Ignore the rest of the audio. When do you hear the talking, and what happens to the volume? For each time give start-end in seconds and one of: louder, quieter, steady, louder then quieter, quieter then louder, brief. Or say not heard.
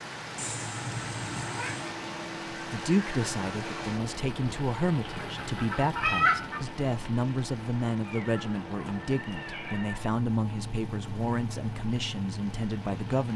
2.7-13.3 steady.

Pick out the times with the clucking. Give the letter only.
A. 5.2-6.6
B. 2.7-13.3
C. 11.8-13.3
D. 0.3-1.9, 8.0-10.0
A.